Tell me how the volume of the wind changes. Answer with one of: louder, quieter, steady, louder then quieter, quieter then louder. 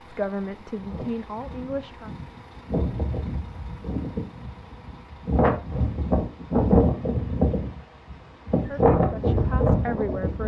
louder.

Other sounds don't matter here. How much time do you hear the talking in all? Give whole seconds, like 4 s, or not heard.
4 s.